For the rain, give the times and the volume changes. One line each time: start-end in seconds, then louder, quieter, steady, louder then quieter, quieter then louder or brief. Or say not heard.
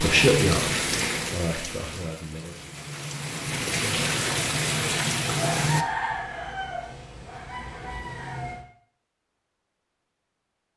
0.0-5.8 quieter then louder.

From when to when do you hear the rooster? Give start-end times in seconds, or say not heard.
5.3-8.7.